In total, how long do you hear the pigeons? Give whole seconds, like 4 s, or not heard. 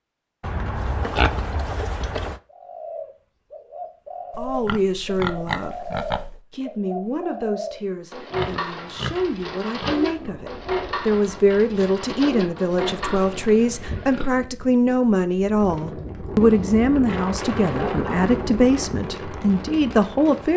11 s.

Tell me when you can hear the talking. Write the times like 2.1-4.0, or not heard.
4.3-20.5.